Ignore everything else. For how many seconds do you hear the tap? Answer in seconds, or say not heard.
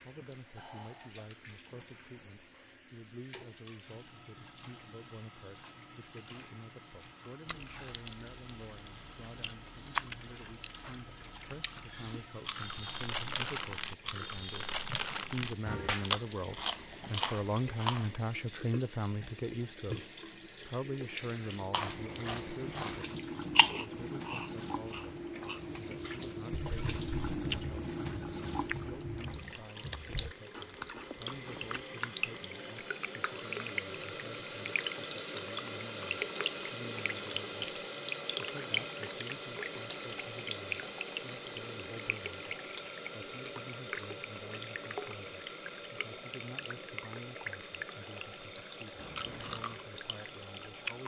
51 s.